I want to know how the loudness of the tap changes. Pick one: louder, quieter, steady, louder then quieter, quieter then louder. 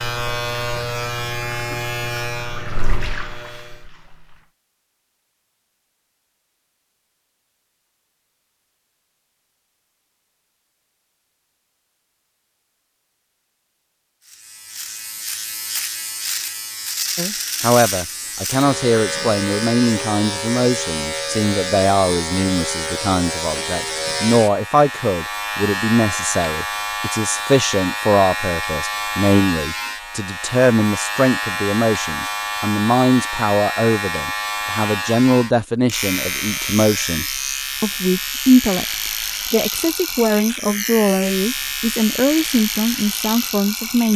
louder then quieter.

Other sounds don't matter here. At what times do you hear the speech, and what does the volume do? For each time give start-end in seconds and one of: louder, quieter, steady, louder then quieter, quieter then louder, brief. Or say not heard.
17.1-38.9 steady
39.5-44.1 steady.